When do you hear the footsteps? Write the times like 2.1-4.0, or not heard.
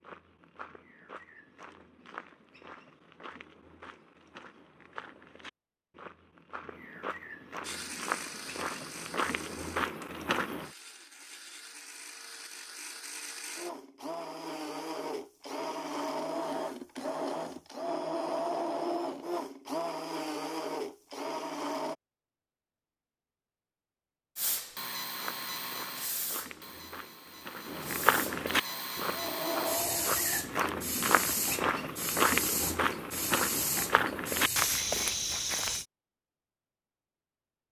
0.0-10.7, 25.1-35.9.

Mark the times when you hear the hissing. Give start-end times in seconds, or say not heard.
24.4-34.9.